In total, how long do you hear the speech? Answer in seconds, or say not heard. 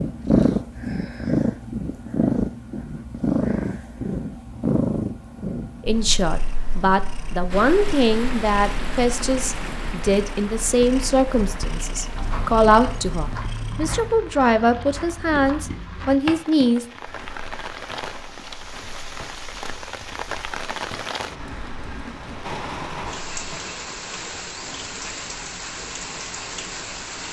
11 s.